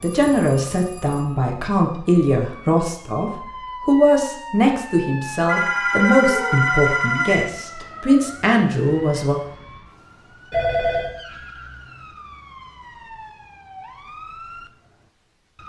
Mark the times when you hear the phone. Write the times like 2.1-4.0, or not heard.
0.0-1.4, 5.5-7.5, 10.5-11.1.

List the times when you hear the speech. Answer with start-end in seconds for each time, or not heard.
0.0-9.4.